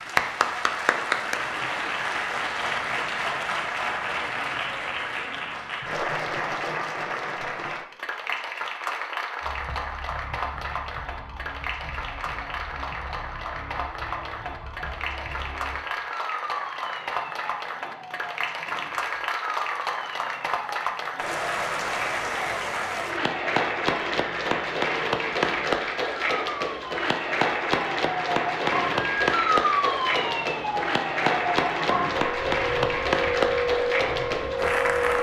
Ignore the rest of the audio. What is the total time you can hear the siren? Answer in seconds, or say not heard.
26 s.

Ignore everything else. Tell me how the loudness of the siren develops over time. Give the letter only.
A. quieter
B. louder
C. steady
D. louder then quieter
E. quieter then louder
B.